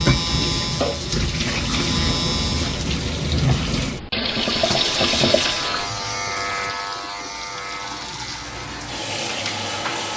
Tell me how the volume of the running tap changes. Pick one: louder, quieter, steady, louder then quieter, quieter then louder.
quieter then louder.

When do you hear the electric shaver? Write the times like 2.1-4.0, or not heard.
0.0-2.8, 4.2-10.1.